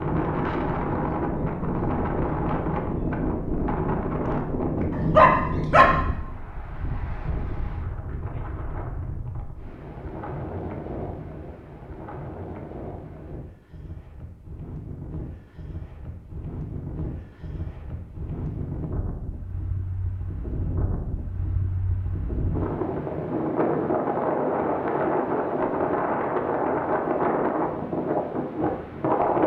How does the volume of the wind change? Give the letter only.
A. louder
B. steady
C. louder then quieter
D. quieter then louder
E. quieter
D.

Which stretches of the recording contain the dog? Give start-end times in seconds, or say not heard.
4.9-5.8.